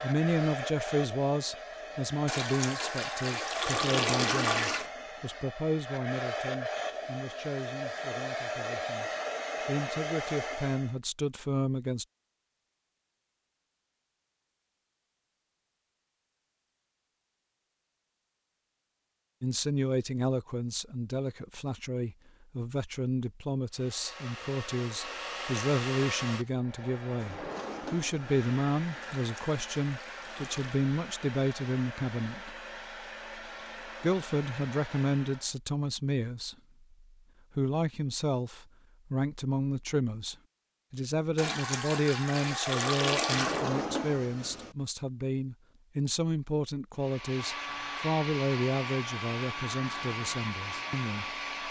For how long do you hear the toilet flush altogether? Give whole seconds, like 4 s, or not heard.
7 s.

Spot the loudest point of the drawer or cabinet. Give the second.
44 s.